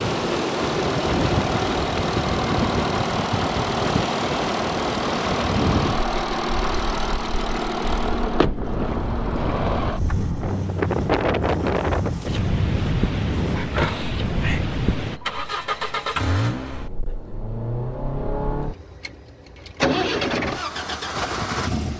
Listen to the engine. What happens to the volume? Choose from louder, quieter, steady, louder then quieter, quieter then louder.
steady.